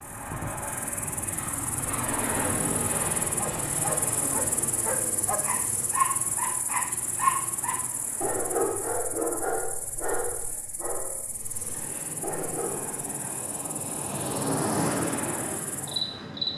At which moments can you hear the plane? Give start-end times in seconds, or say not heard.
0.0-8.8, 11.2-16.5.